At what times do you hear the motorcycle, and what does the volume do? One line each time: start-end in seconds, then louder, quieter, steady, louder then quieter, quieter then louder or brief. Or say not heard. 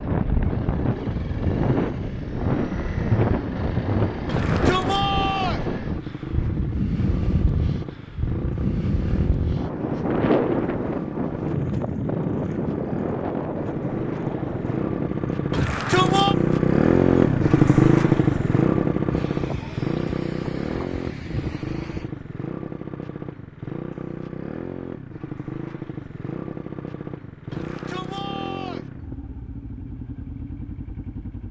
0.0-31.4 louder then quieter.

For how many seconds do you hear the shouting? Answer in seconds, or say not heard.
4 s.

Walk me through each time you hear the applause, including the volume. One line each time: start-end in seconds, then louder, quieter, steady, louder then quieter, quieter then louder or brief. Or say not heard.
not heard.